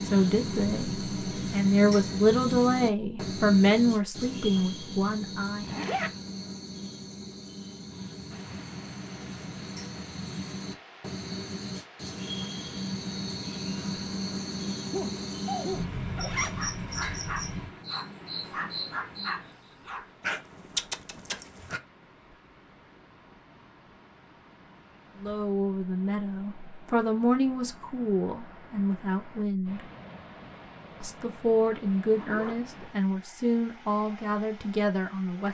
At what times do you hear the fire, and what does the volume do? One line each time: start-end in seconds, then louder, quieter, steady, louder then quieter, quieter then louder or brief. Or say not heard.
not heard.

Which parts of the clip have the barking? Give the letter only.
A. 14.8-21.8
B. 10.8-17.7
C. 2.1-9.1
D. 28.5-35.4
A.